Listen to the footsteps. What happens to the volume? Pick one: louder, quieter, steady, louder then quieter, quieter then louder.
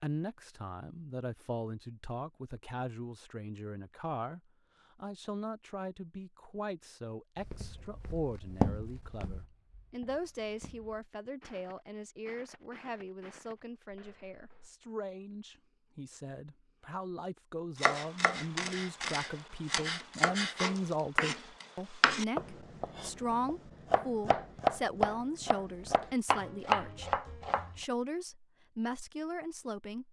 quieter.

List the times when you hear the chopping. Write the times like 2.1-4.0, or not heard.
17.8-27.8.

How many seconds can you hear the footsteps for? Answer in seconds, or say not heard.
7 s.